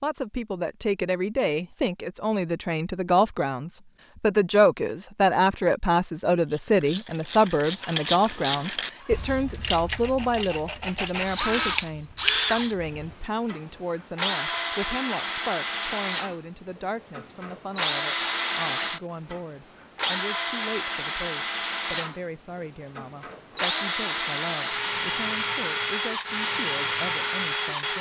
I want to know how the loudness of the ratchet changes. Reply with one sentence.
The volume of the ratchet goes up, then down.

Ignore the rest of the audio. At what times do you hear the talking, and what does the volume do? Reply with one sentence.
You can hear the talking from 0.0 to 27.9 s, getting quieter.